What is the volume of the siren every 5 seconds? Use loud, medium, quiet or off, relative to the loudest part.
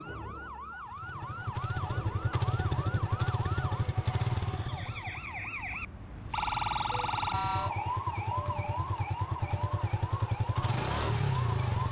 medium, loud, medium.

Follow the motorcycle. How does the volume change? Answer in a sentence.
The volume of the motorcycle goes down, then up.